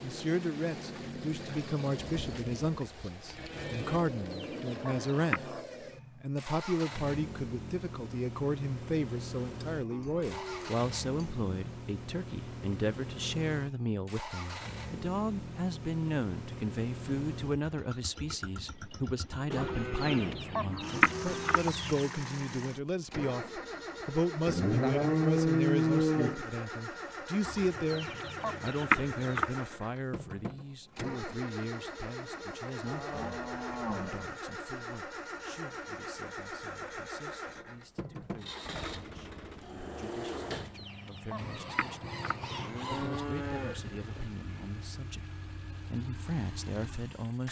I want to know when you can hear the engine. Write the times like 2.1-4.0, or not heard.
0.0-47.4.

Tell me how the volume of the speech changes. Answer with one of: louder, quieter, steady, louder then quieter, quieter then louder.
quieter.